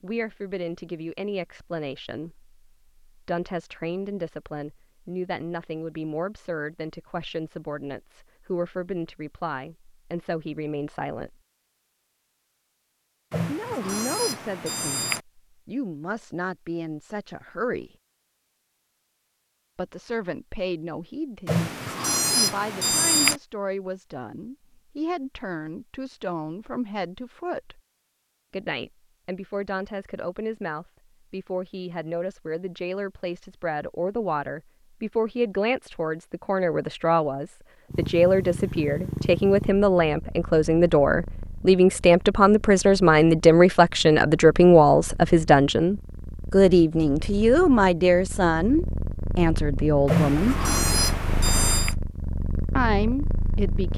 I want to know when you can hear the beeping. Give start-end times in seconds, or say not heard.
13.3-15.2, 21.4-23.4, 50.0-52.0.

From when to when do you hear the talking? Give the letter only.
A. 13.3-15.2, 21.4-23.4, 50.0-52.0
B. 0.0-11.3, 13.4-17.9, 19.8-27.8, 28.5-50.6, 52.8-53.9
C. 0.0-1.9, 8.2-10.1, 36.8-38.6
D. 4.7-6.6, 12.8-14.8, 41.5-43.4
B.